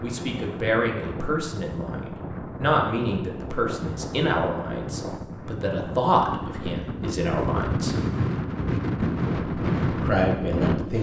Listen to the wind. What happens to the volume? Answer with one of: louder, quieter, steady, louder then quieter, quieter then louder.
louder.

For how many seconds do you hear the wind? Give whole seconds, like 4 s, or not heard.
11 s.